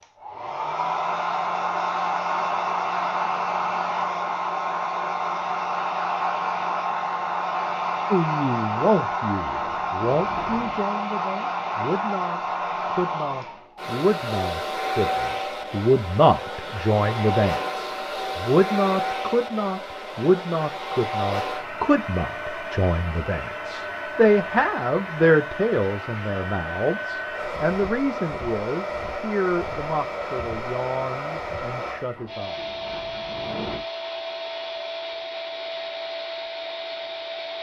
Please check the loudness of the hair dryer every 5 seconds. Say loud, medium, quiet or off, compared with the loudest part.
loud, loud, loud, loud, medium, medium, medium, medium.